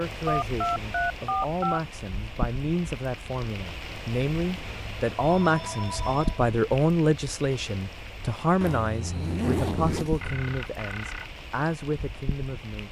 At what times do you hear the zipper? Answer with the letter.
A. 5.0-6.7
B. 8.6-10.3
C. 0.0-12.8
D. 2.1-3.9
B.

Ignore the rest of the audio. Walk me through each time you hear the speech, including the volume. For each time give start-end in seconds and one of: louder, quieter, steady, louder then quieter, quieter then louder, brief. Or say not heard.
0.0-12.8 louder then quieter.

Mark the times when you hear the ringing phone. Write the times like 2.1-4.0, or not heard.
0.2-1.8, 4.7-6.5, 10.2-11.3.